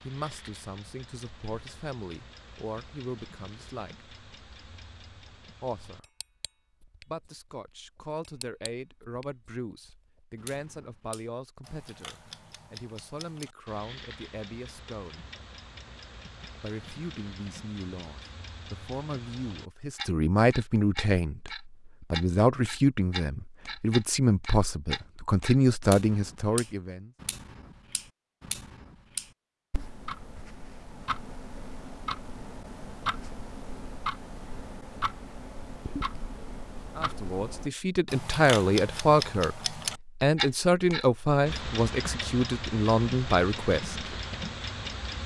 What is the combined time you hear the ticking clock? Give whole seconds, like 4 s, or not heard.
45 s.